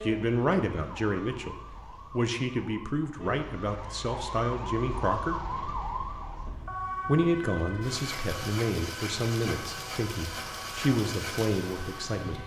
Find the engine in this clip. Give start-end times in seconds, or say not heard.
6.5-12.4.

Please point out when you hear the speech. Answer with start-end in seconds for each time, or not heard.
0.0-5.3, 7.0-12.4.